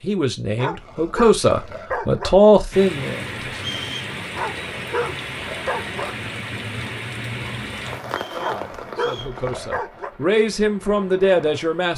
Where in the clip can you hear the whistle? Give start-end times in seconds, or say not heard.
3.5-4.2, 8.1-9.3.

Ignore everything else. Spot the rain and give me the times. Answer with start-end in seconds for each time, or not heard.
2.7-11.9.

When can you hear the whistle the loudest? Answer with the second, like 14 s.
4 s.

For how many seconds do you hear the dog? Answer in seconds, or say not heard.
5 s.